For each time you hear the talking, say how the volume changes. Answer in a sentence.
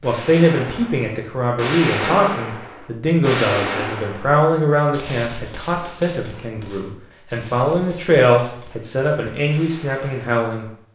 The talking can be heard from 0.0 to 10.7 s, at a steady volume.